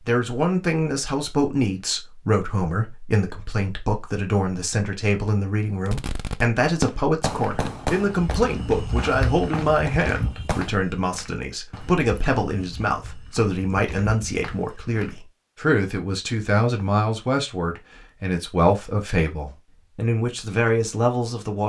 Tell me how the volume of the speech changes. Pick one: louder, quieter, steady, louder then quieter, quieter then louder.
steady.